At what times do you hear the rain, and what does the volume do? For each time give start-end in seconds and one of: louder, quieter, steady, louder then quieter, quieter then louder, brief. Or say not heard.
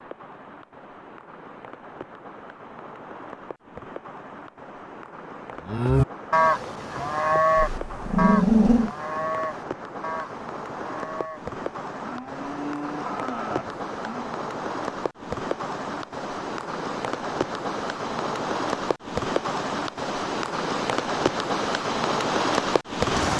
0.0-23.3 louder.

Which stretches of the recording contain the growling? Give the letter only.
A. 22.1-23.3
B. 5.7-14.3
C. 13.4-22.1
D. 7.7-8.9
D.